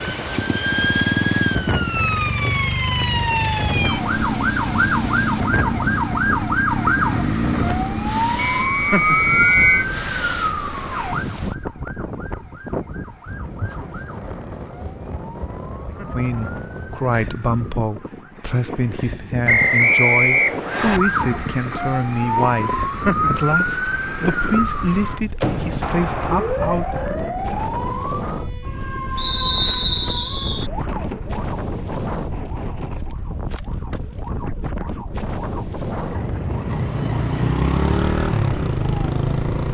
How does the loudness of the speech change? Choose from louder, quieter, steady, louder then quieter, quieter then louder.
steady.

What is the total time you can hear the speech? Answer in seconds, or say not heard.
11 s.